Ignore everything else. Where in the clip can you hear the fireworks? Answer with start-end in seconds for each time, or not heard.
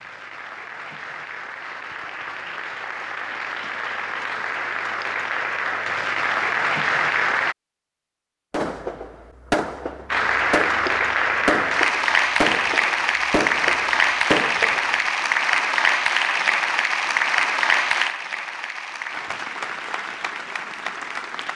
8.5-14.9.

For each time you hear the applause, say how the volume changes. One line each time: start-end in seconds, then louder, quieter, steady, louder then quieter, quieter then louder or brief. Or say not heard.
0.0-7.5 louder
10.1-21.5 quieter.